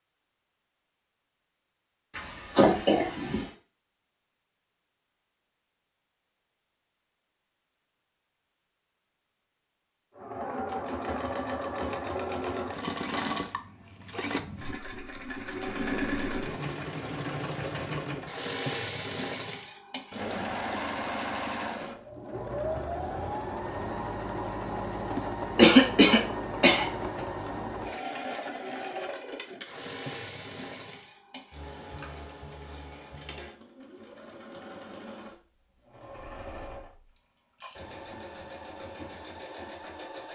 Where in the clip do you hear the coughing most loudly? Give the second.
26 s.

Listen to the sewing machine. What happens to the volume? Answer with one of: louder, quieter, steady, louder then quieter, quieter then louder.
quieter.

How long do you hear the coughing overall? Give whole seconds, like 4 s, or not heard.
3 s.